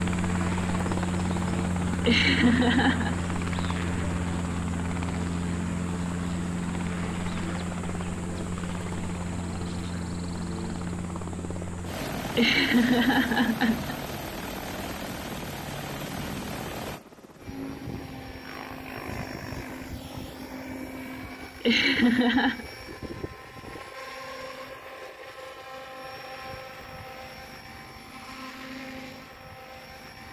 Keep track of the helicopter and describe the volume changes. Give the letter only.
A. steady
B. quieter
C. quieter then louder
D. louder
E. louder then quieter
B.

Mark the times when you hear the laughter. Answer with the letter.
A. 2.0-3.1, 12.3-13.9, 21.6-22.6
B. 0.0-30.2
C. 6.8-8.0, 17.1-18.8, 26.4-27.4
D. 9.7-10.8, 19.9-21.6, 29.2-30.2
A.